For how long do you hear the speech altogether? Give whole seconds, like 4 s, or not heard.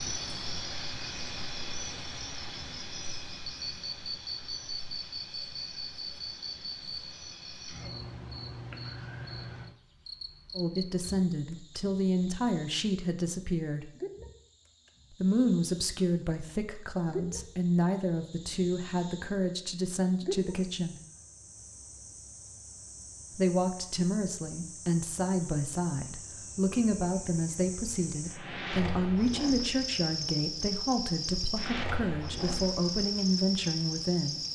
20 s.